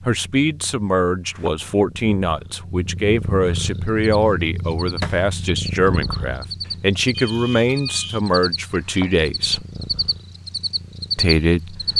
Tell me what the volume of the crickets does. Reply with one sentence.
The volume of the crickets goes up.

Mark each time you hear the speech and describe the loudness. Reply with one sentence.
The speech can be heard from 0.1 to 9.7 s, at a steady volume; and briefly from 11.2 to 11.9 s.